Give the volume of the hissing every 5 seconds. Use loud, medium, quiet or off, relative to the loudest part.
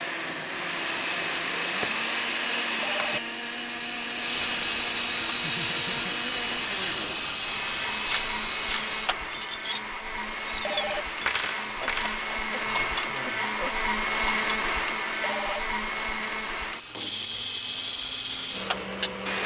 loud, loud, medium, medium.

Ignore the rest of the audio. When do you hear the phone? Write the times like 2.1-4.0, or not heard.
2.7-3.2, 10.5-11.1, 15.2-15.6.